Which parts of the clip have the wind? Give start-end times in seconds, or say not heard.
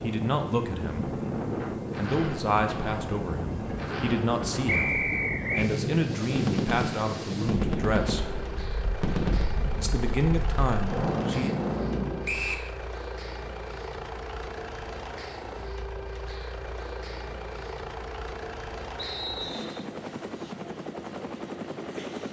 0.0-12.3.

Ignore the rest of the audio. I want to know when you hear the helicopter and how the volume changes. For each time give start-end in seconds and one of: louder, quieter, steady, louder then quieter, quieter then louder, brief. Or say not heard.
0.0-22.2 steady.